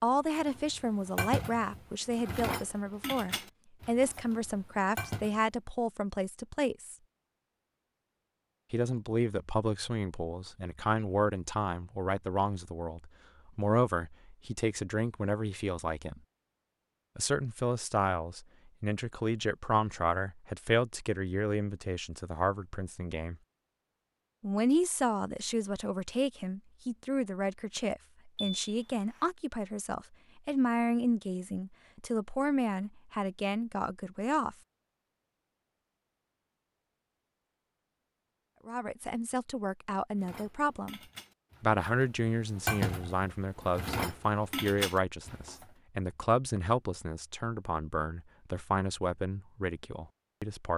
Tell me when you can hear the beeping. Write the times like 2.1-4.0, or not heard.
28.4-29.2.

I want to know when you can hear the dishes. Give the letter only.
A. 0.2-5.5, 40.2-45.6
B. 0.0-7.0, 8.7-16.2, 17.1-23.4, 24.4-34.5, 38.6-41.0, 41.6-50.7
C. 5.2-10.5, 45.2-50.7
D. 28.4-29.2
A.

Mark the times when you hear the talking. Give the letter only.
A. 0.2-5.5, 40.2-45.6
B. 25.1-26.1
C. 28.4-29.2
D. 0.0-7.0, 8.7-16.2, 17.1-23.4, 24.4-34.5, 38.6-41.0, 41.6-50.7
D.